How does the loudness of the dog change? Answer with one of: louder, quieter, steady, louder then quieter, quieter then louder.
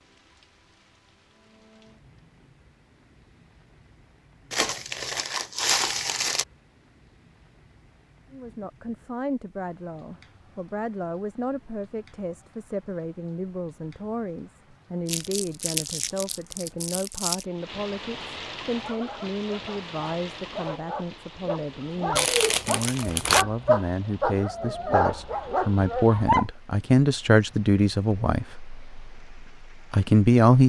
louder.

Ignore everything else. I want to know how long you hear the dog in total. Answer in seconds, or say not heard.
8 s.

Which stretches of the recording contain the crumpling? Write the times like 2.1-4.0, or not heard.
4.5-6.5, 15.1-17.4, 22.1-23.4.